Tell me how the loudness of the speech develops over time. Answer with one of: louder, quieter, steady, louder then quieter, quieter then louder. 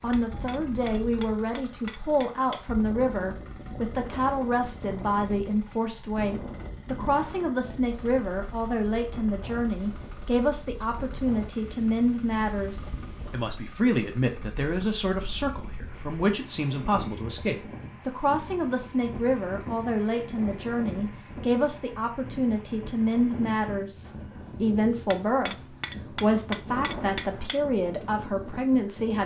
steady.